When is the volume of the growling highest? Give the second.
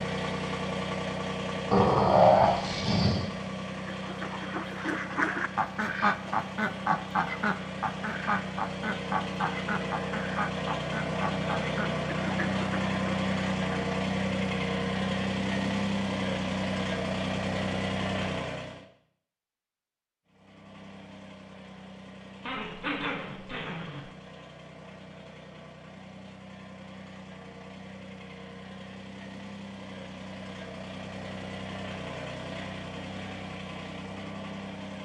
2 s.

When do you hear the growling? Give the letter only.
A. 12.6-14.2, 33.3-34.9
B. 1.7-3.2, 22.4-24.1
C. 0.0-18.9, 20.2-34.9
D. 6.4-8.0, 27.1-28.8
B.